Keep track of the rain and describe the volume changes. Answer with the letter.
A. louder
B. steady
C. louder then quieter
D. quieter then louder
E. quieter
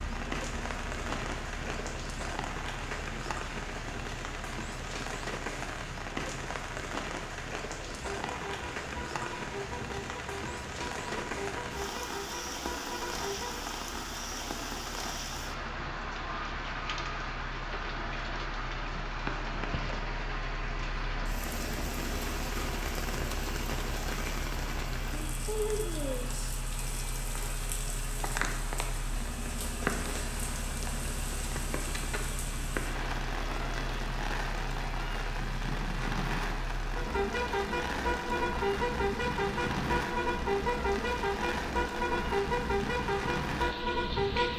B.